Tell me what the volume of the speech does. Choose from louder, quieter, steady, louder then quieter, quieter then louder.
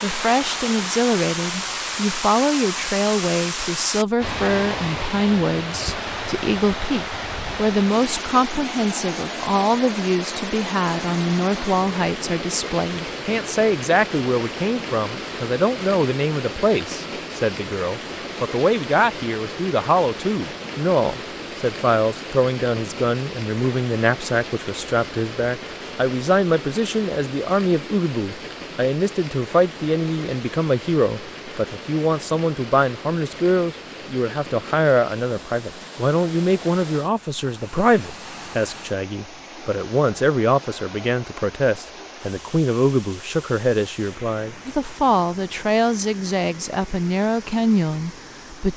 steady.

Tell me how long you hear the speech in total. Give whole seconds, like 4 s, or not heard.
49 s.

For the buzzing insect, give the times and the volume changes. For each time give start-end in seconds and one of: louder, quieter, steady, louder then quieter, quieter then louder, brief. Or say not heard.
not heard.